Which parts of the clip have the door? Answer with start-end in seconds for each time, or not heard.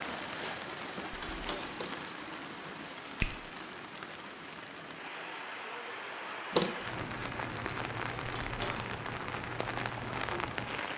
1.1-1.8, 8.2-8.9.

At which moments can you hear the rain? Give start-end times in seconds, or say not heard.
0.0-10.9.